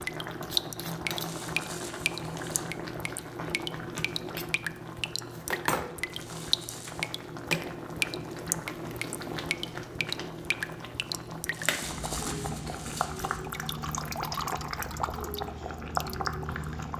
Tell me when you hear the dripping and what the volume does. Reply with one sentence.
The dripping can be heard from 0.0 to 16.9 s, at a steady volume.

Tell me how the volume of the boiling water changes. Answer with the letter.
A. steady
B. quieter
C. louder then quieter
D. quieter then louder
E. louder
A.